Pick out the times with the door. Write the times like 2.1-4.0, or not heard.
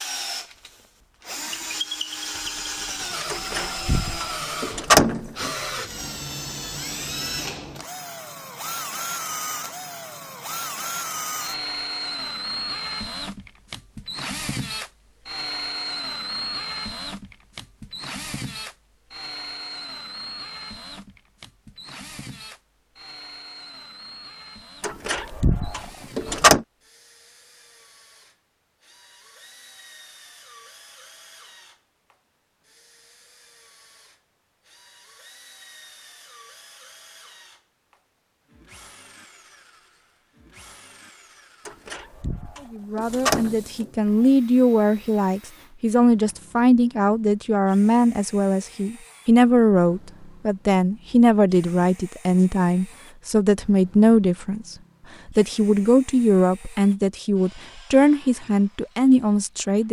3.3-5.5, 24.8-26.6, 41.6-44.1.